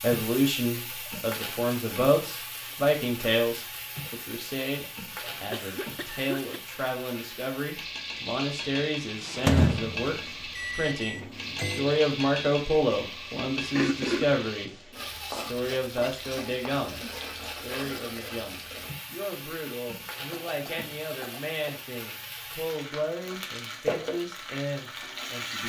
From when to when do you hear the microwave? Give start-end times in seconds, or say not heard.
9.2-11.9.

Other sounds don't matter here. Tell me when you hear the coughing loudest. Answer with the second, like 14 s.
14 s.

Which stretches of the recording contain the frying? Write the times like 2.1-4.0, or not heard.
0.0-25.6.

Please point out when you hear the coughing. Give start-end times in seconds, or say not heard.
5.5-6.6, 13.8-14.4, 20.3-21.9.